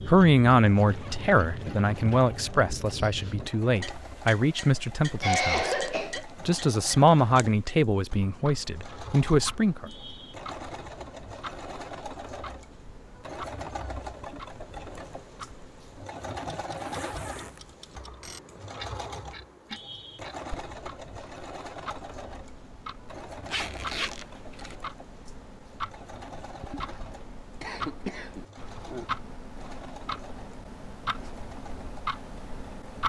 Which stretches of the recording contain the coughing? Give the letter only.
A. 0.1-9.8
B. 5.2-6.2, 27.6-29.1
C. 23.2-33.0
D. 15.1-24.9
B.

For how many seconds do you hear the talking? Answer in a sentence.
You can hear the talking for 10 seconds altogether.